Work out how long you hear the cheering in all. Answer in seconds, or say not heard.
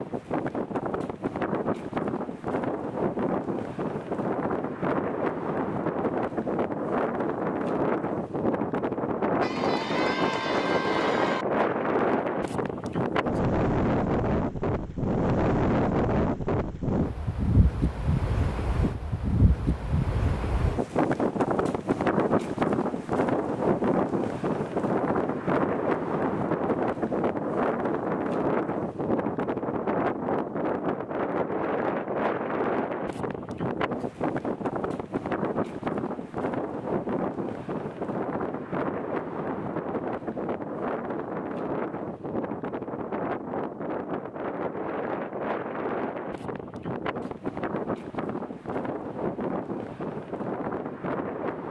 2 s.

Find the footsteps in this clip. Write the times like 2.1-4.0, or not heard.
not heard.